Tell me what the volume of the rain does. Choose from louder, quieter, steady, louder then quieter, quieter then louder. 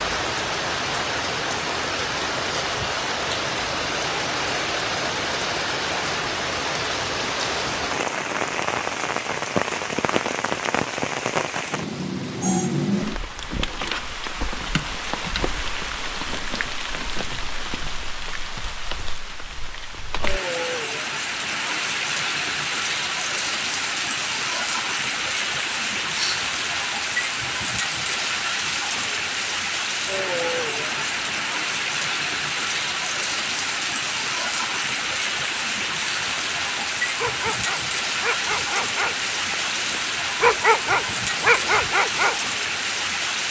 steady.